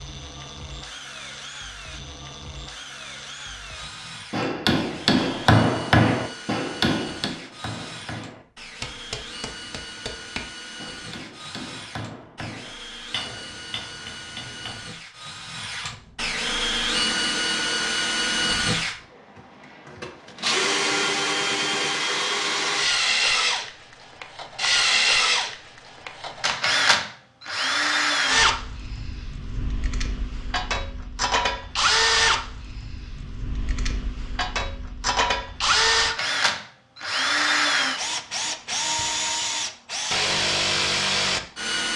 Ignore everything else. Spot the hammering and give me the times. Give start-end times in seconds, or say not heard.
4.3-14.8.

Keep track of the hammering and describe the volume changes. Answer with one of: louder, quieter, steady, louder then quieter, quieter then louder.
quieter.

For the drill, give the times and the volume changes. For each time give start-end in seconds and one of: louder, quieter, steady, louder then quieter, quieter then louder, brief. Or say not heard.
0.0-41.9 louder.